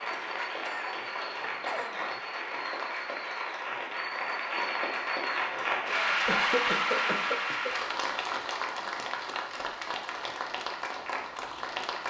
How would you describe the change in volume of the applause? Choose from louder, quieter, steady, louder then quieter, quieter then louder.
louder then quieter.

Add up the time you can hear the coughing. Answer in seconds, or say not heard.
3 s.